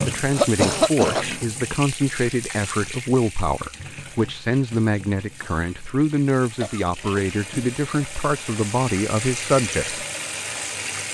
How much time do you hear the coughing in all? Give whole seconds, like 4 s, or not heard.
2 s.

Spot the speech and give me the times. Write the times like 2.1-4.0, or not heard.
0.0-10.1.